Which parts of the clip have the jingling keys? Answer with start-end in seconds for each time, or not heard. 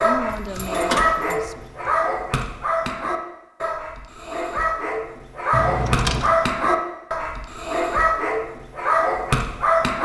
0.3-1.9, 5.5-6.3.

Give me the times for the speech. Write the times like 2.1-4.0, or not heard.
0.0-1.6.